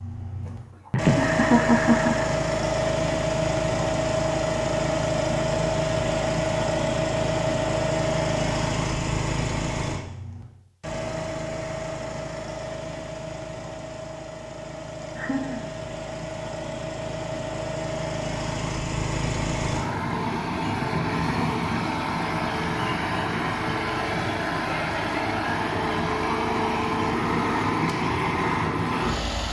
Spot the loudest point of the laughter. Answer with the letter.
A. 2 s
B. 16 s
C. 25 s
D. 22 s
A.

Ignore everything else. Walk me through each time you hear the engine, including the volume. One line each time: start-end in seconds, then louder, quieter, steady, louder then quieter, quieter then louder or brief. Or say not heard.
0.0-29.4 quieter then louder.